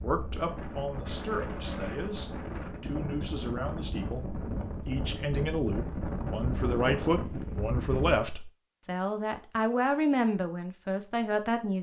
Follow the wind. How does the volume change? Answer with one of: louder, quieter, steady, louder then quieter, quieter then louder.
steady.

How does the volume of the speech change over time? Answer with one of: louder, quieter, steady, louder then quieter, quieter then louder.
louder.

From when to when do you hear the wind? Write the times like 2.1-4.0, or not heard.
0.0-8.2.